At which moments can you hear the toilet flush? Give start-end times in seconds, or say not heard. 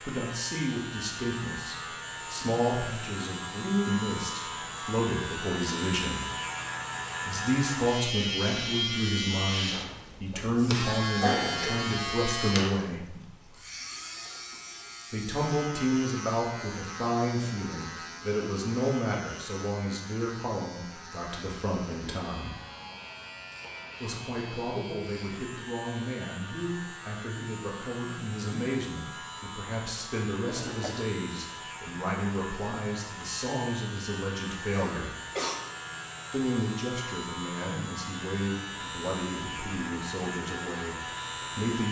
30.4-31.1.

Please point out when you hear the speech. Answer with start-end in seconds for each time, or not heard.
0.0-6.3, 7.2-13.2, 15.1-22.6, 24.0-35.1, 36.3-41.8.